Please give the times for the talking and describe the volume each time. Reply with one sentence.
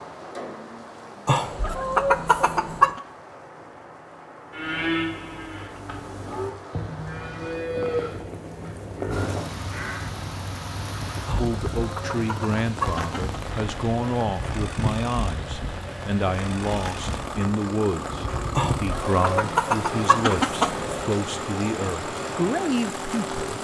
You can hear the talking from 11.3 to 23.5 s, at a steady volume.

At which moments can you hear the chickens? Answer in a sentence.
The chickens can be heard from 1.2 to 3.0 s, from 11.2 to 13.4 s and from 18.6 to 21.1 s.